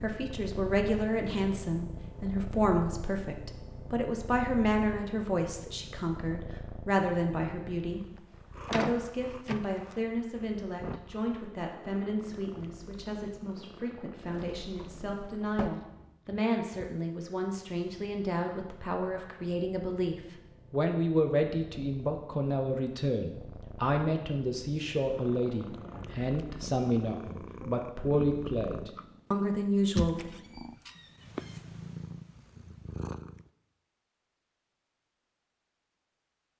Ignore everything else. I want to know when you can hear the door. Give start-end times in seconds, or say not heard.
8.7-9.9, 14.2-15.7, 30.1-31.6.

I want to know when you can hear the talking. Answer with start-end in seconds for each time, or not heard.
0.0-8.1, 8.7-30.4.